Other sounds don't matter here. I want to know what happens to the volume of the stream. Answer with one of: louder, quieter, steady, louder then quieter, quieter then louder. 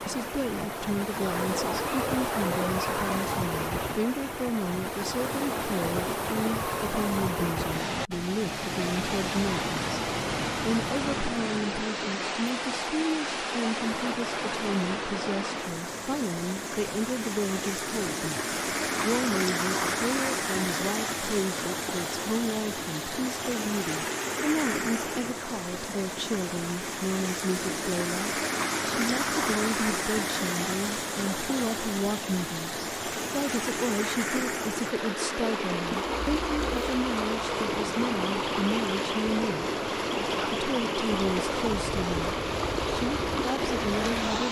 steady.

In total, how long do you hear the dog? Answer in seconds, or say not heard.
2 s.